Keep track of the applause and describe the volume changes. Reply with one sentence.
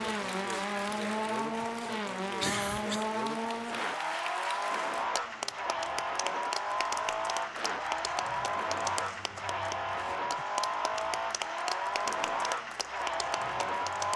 The loudness of the applause stays about the same.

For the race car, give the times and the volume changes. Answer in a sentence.
The race car can be heard from 0.0 to 14.1 s, at a steady volume.